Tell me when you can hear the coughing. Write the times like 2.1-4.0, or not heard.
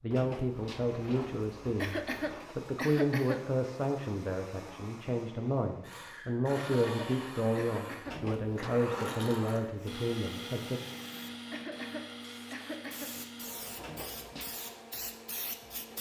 1.8-3.5, 6.5-8.2, 11.5-13.1.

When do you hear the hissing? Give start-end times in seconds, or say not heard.
9.8-15.9.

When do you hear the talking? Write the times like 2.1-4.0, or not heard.
0.0-10.8.